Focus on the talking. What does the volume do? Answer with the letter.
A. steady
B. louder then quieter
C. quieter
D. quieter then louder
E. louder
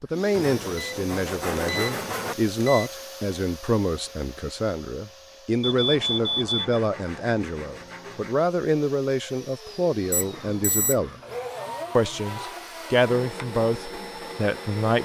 A.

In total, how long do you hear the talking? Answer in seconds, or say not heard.
14 s.